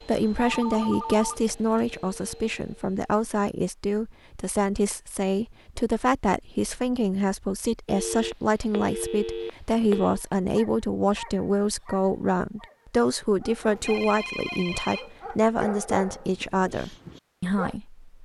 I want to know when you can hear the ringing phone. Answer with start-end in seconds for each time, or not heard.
0.3-1.9, 7.8-10.2, 13.8-15.5.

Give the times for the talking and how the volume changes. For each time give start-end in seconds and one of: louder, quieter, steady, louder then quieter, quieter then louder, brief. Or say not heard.
0.1-18.1 steady.